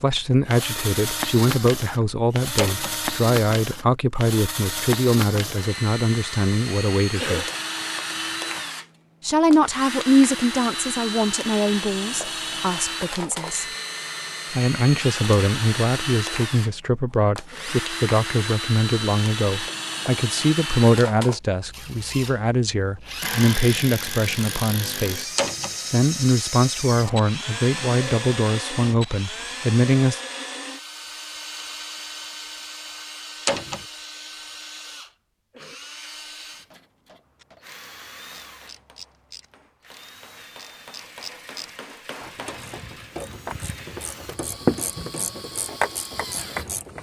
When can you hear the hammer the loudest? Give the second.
42 s.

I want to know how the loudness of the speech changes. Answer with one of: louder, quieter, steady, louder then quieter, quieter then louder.
steady.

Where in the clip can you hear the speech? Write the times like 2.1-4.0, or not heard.
0.0-7.5, 9.2-13.7, 14.5-25.3, 25.9-30.2.